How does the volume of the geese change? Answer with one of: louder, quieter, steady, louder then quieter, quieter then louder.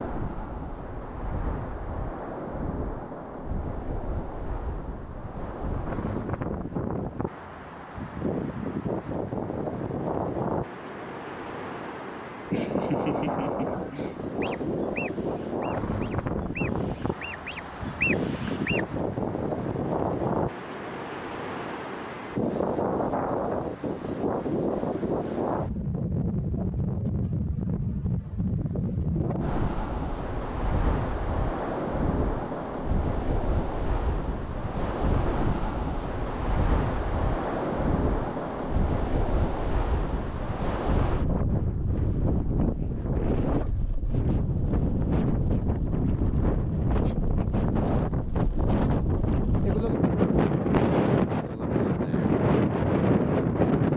louder.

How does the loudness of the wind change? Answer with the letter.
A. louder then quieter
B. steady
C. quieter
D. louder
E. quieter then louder
D.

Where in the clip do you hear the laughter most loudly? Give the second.
13 s.